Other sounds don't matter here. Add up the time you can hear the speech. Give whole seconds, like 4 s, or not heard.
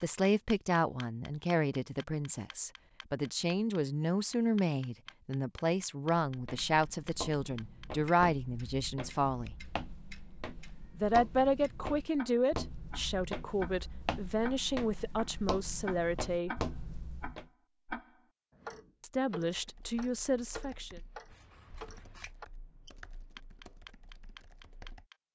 17 s.